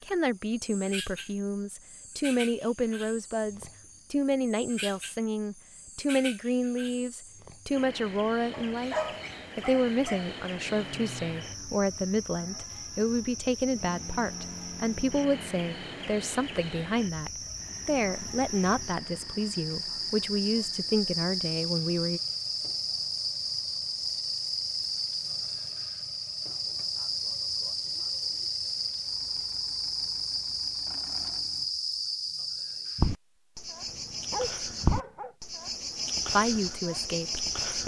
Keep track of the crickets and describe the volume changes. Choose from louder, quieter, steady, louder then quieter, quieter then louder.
louder.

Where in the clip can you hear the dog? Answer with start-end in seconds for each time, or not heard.
8.5-10.3, 33.9-35.4.